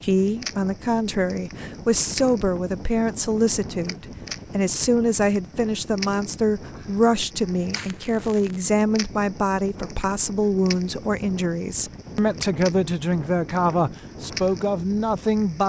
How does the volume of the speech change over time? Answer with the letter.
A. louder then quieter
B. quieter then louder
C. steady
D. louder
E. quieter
C.